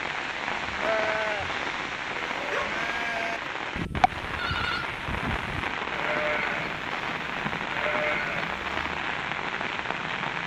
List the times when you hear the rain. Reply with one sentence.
You can hear the rain from 0.0 to 10.4 s.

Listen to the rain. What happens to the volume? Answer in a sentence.
The loudness of the rain stays about the same.